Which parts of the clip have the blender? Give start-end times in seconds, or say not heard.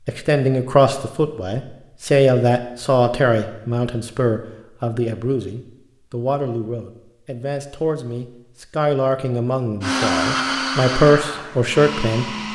9.8-12.5.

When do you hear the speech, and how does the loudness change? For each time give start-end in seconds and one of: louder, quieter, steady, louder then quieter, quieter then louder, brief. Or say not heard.
0.1-12.3 quieter then louder.